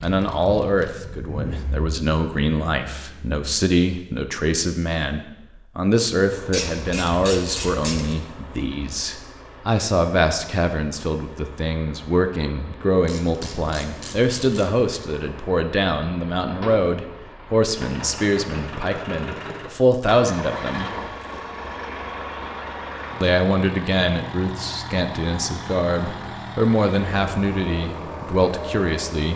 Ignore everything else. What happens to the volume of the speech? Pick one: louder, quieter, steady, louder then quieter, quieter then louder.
steady.